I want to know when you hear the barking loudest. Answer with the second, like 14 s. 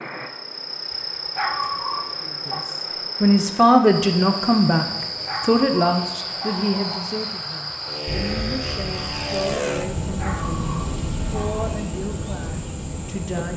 2 s.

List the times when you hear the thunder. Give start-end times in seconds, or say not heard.
8.1-9.6.